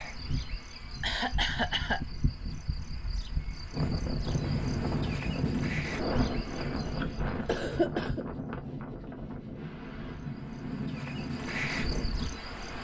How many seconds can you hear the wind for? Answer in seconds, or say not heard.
9 s.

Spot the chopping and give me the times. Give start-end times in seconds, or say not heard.
not heard.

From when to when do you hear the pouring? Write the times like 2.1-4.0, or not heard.
not heard.